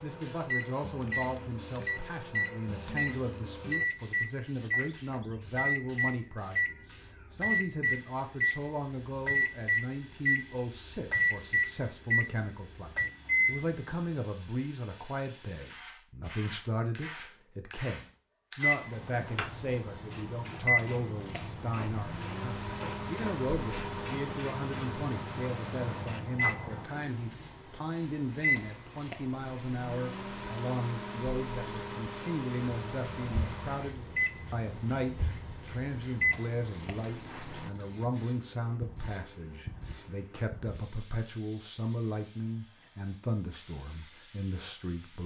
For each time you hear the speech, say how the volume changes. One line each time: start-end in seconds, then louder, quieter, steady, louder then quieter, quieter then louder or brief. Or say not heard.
0.0-45.2 steady.